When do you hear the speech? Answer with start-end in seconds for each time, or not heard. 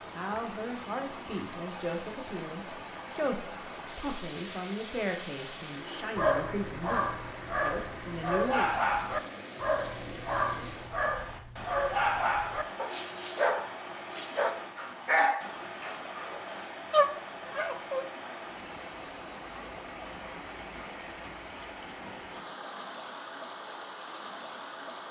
0.1-8.7.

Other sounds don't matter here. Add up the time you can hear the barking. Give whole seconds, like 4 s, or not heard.
12 s.